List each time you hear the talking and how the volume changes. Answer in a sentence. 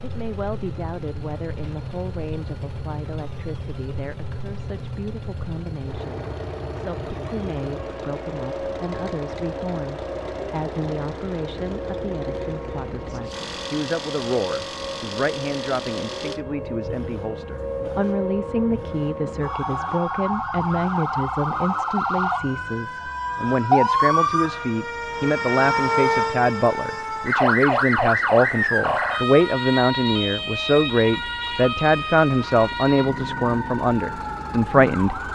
The talking can be heard from 0.0 to 35.2 s, getting louder.